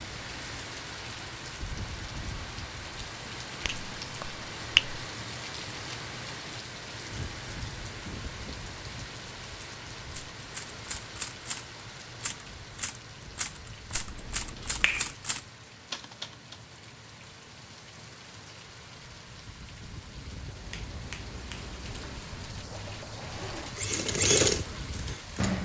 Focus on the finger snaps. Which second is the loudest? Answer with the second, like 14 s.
5 s.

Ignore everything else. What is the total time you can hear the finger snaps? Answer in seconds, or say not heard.
4 s.